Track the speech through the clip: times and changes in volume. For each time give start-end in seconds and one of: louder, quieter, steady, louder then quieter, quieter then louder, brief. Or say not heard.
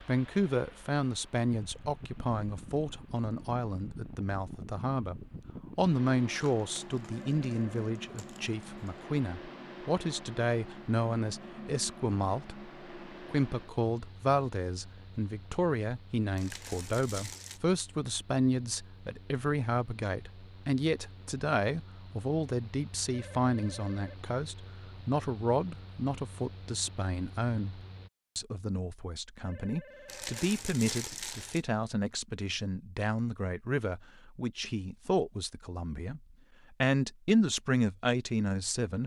0.0-39.0 steady.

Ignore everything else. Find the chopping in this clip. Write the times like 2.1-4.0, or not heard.
not heard.